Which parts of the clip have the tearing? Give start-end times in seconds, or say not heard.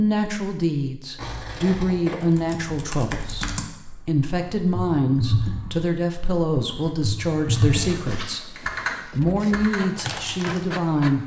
not heard.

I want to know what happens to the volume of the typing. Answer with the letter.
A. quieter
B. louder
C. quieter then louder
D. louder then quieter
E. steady
D.